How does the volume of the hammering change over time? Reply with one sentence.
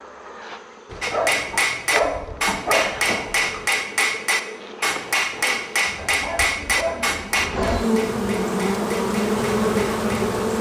The volume of the hammering goes down.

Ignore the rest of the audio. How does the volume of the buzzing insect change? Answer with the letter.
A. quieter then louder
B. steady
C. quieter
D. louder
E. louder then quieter
D.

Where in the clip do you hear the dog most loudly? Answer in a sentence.
The loudest moment of the dog is at 2 seconds.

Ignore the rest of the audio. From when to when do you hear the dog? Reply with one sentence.
You can hear the dog from 0.9 to 3.6 s and from 6.0 to 8.0 s.